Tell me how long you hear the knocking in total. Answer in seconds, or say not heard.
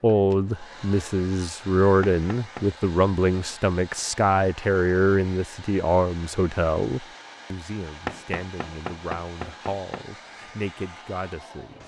3 s.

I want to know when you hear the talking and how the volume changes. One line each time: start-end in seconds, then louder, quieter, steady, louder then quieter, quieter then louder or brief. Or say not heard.
0.0-11.8 quieter.